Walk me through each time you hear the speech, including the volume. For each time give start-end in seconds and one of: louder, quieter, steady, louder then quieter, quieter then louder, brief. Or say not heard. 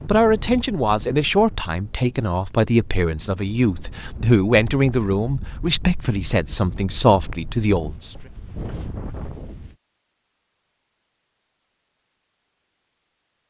0.1-8.1 steady.